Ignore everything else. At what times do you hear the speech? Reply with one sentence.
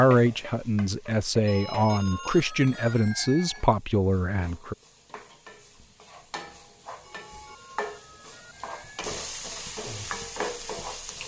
The speech can be heard from 0.0 to 4.8 s.